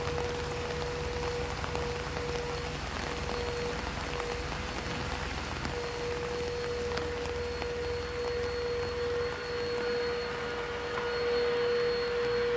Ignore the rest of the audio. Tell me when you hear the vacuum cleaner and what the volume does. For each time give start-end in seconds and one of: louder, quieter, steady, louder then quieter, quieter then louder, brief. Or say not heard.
0.0-12.5 louder.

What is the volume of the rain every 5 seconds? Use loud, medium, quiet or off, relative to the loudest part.
loud, loud, medium.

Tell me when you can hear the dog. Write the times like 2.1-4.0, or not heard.
not heard.